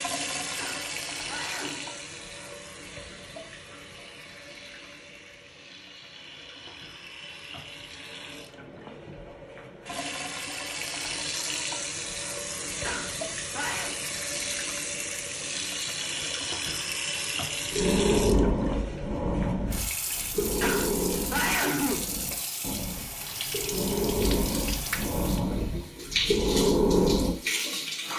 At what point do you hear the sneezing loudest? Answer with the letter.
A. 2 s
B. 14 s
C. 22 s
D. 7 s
C.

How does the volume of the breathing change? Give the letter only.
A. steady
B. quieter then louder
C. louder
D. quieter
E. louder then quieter
B.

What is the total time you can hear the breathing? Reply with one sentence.
The breathing can be heard for 10 seconds in total.